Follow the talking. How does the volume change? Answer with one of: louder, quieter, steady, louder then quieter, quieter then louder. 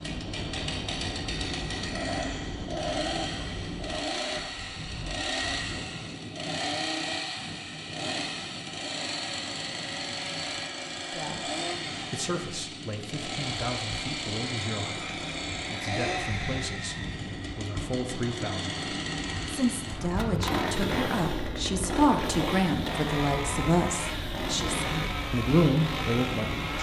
louder.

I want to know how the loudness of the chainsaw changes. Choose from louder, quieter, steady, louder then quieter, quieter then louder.
steady.